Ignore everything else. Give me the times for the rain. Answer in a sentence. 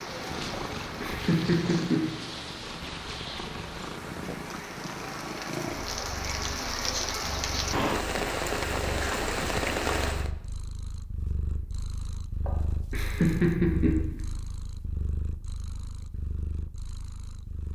The rain can be heard from 0.0 to 10.3 s.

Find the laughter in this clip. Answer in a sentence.
The laughter can be heard from 0.5 to 2.0 s and from 12.4 to 14.0 s.